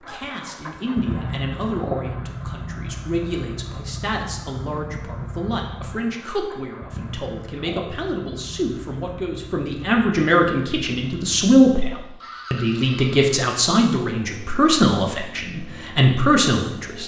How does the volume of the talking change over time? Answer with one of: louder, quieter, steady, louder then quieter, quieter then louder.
louder.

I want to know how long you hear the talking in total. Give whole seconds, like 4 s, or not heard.
17 s.